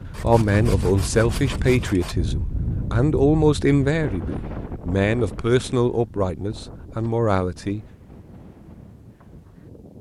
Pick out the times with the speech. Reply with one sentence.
You can hear the speech from 0.2 to 7.8 s.